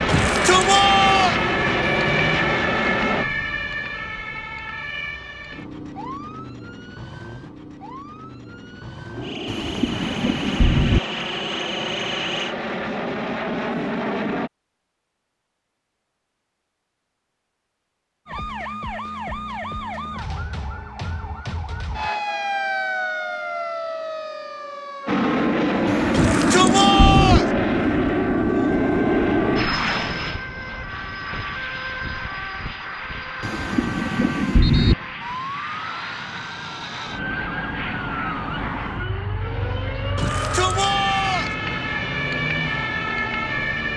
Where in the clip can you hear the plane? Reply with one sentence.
The plane can be heard from 0.0 to 3.2 s, from 9.2 to 14.5 s and from 25.1 to 43.9 s.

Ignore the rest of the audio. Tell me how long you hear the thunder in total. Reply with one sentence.
The thunder can be heard for 5 seconds in total.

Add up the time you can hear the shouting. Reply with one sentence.
The shouting can be heard for 4 seconds in total.